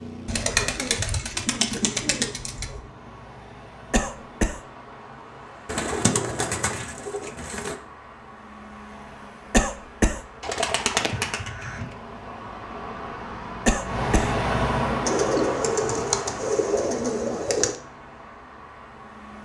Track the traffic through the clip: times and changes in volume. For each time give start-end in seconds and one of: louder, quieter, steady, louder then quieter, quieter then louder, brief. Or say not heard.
0.0-19.4 louder then quieter.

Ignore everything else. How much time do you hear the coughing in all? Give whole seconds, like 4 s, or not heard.
2 s.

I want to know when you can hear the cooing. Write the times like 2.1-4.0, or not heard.
0.2-2.8, 5.7-7.8, 10.4-11.9, 15.1-17.8.